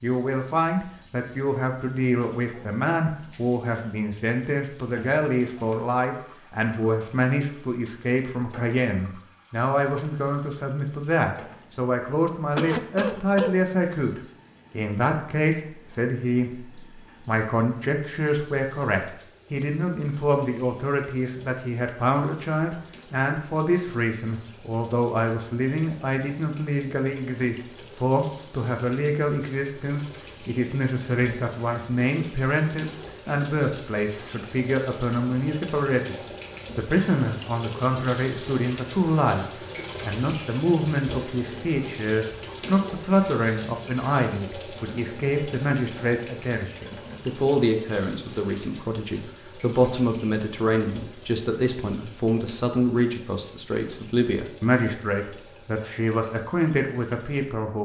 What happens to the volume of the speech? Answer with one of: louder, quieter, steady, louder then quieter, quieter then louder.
steady.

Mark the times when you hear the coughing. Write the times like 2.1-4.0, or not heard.
12.6-13.7.